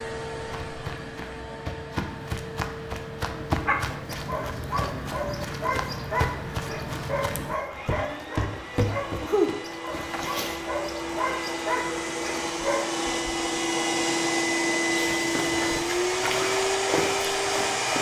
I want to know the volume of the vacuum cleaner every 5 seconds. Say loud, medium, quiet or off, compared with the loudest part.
quiet, quiet, loud, loud.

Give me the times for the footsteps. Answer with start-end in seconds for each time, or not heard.
0.0-10.7, 14.9-17.9.